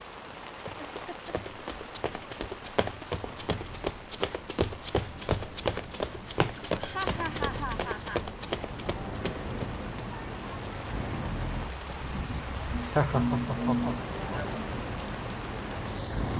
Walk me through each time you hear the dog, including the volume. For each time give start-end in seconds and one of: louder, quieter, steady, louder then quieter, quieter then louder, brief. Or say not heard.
not heard.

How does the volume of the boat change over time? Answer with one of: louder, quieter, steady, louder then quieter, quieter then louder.
louder.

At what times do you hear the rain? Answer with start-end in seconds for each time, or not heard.
0.0-16.3.